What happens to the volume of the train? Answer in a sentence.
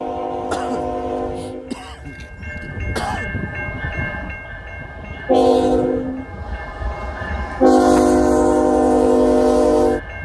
The volume of the train goes up.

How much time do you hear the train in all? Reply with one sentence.
You can hear the train for 10 seconds altogether.